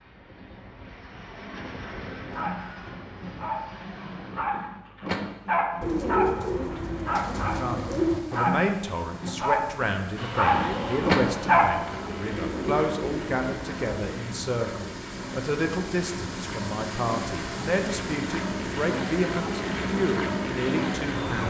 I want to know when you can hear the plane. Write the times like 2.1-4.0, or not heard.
0.0-4.5, 10.2-21.4.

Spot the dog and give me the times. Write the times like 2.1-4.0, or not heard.
2.3-11.8.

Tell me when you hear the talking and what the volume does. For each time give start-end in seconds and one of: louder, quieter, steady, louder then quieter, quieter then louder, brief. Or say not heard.
7.4-21.4 steady.